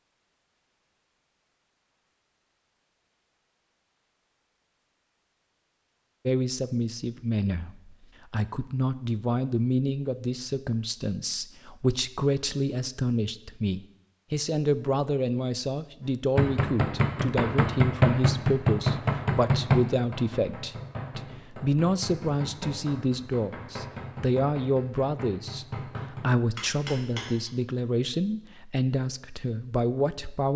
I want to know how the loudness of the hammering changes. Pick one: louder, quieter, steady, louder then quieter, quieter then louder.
quieter.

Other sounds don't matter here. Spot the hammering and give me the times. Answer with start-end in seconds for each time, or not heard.
16.4-27.5.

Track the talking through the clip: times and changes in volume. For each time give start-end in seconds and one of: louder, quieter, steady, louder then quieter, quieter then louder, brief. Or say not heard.
6.2-30.5 steady.